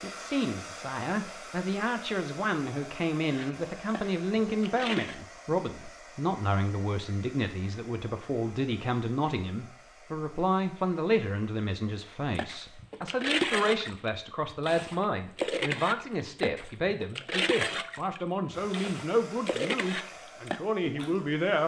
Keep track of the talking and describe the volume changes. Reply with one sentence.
The volume of the talking stays about the same.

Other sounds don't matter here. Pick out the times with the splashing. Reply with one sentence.
You can hear the splashing from 3.2 to 5.2 s and from 12.3 to 21.2 s.